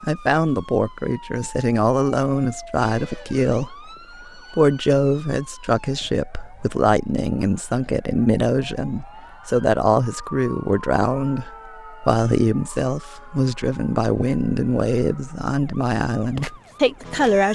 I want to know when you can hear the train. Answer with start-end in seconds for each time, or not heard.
not heard.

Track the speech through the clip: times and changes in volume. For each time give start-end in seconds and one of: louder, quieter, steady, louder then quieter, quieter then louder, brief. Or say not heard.
0.0-17.5 steady.